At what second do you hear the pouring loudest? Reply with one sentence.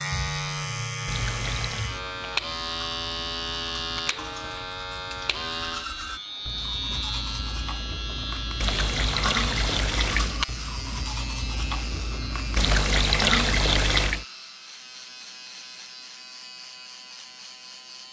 The volume of the pouring peaks at 13 seconds.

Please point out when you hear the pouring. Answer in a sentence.
The pouring can be heard from 1.1 to 1.9 s, from 8.6 to 10.4 s and from 12.6 to 14.2 s.